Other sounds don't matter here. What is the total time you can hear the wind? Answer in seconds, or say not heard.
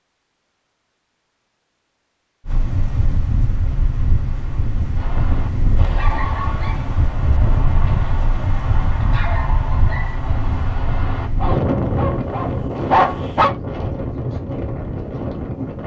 13 s.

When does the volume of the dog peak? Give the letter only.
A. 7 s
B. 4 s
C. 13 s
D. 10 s
C.